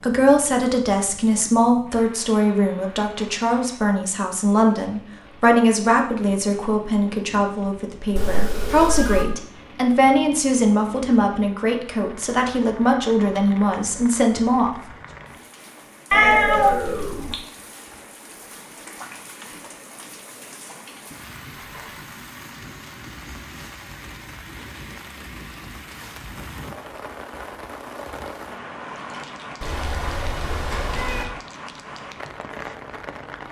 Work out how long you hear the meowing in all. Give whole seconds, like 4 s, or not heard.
4 s.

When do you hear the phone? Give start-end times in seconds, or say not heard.
21.6-22.1.